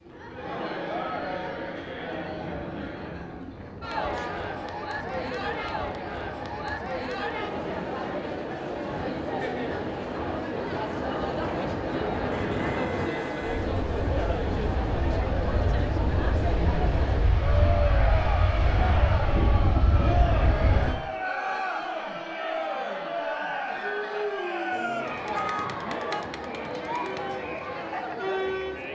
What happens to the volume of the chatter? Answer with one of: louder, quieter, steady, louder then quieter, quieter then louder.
steady.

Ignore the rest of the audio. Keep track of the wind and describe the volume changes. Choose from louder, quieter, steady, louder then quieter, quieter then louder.
louder.